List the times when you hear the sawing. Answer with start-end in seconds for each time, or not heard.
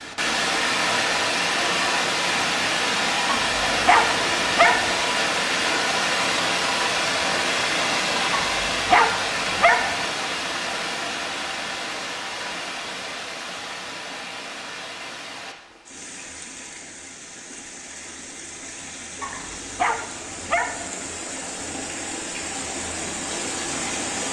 not heard.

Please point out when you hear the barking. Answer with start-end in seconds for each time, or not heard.
3.2-5.0, 8.3-10.1, 19.2-20.9.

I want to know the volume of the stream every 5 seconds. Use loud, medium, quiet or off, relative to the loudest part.
loud, loud, medium, quiet, medium.